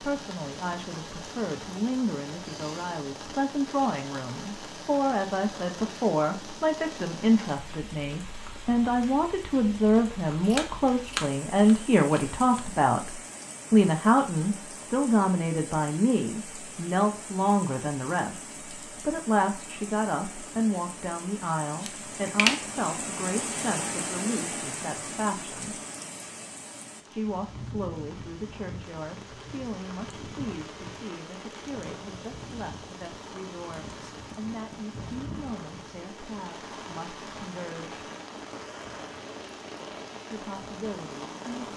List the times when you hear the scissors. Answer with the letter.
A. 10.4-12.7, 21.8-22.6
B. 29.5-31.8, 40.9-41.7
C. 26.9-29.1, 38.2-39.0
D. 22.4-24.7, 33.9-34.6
A.